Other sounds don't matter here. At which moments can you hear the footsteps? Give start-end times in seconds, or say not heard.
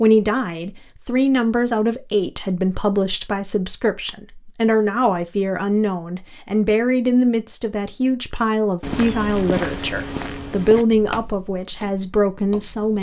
8.8-12.9.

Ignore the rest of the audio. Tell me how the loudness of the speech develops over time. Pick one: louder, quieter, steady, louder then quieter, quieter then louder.
steady.